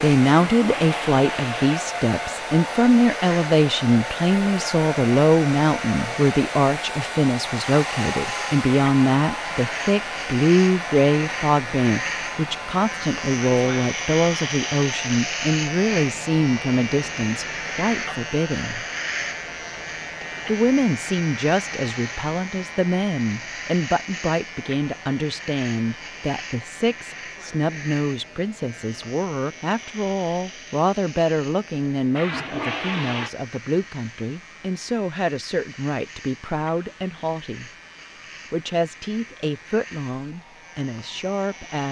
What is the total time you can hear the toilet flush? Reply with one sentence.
The toilet flush can be heard for 3 seconds in total.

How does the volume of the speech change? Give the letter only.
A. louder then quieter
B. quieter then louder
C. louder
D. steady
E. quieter
E.